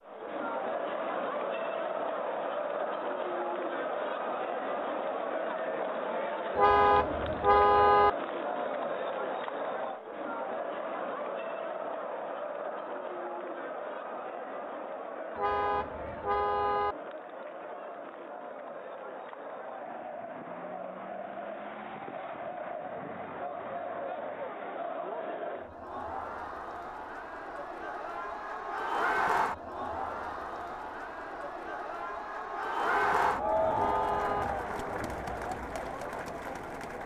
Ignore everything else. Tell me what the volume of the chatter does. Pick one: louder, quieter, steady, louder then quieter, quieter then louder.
quieter then louder.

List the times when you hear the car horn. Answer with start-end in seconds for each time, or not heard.
6.5-8.1, 15.3-16.9, 32.9-34.5.